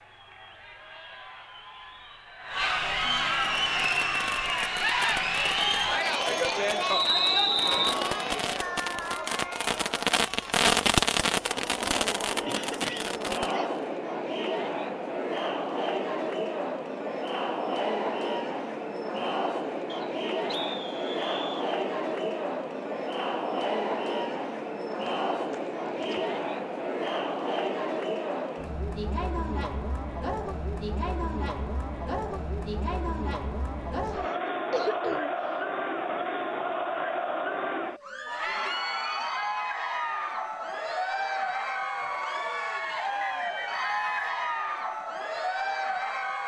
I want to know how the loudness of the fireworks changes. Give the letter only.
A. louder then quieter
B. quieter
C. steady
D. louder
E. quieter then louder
A.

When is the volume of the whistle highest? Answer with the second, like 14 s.
7 s.